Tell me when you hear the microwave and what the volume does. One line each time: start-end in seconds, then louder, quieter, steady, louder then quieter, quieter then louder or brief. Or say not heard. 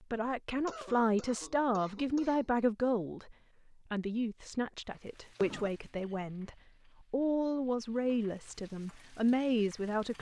not heard.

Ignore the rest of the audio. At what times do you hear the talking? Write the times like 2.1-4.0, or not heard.
0.1-10.1.